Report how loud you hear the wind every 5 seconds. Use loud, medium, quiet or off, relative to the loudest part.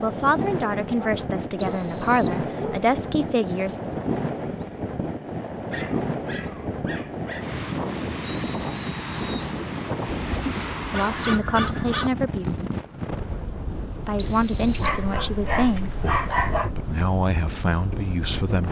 loud, loud, loud, medium.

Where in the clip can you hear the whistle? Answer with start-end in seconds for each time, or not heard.
1.6-2.4, 8.3-9.5, 14.2-15.0.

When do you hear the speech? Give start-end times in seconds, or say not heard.
0.0-3.8, 10.9-12.4, 14.1-18.6.